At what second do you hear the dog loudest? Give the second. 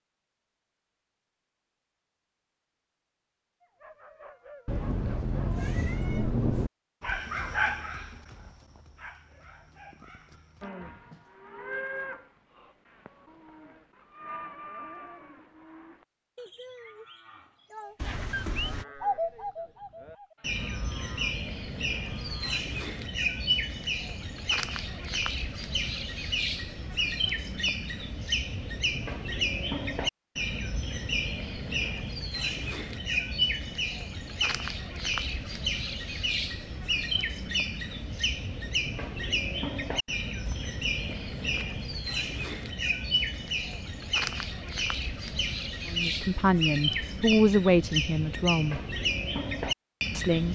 8 s.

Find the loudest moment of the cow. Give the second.
12 s.